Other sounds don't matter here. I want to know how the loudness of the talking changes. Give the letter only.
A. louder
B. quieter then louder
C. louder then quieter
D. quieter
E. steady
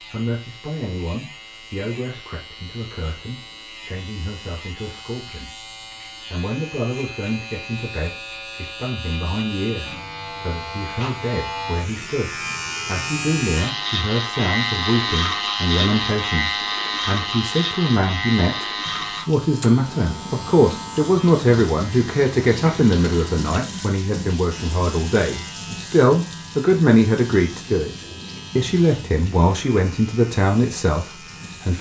A.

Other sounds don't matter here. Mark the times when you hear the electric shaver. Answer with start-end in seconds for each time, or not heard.
0.0-31.7.